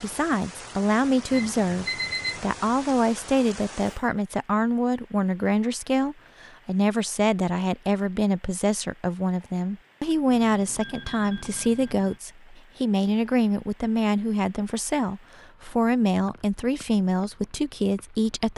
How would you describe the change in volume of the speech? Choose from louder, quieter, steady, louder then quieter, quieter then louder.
steady.